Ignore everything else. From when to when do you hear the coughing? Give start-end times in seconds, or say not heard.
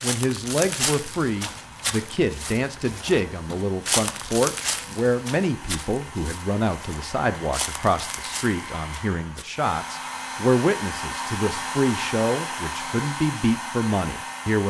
not heard.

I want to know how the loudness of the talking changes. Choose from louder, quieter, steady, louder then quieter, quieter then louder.
steady.